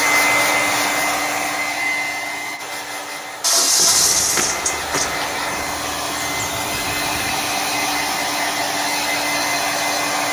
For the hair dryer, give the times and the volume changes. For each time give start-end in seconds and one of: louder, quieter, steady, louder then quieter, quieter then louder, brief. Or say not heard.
0.0-10.2 quieter then louder.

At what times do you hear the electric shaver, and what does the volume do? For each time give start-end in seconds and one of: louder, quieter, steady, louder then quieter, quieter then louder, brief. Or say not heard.
not heard.